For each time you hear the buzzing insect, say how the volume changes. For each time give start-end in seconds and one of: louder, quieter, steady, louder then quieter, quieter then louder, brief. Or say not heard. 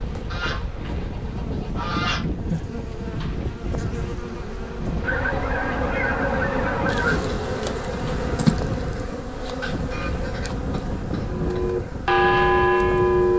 0.0-13.3 louder then quieter.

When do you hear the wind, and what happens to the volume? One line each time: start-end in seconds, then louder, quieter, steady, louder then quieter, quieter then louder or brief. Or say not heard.
0.0-13.3 steady.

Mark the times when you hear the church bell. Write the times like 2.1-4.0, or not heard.
11.2-13.3.